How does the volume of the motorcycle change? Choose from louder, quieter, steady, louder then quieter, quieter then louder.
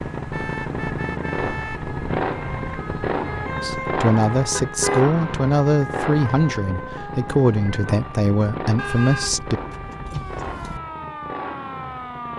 quieter.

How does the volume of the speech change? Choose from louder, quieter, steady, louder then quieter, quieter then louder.
steady.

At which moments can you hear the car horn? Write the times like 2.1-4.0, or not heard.
0.3-1.9, 4.5-5.1, 8.8-10.8.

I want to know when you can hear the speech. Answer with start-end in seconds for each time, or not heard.
3.6-9.6.